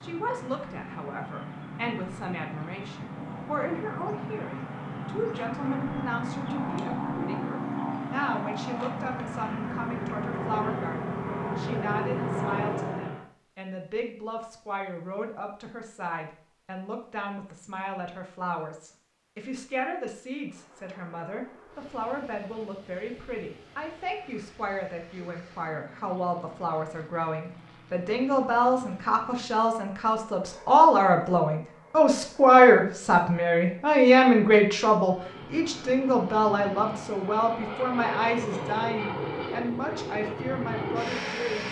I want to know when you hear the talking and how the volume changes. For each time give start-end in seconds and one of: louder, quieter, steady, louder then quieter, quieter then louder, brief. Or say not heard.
0.0-41.6 louder.